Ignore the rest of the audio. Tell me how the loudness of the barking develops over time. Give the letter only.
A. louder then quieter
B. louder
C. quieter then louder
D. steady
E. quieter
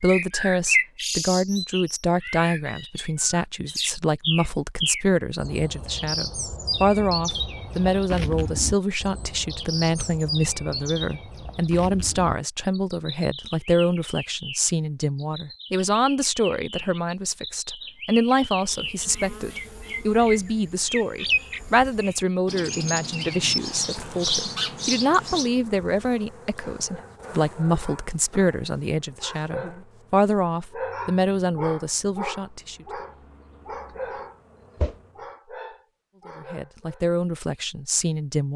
A.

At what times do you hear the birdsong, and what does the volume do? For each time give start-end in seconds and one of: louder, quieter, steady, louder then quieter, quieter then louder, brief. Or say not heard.
0.0-25.5 quieter then louder.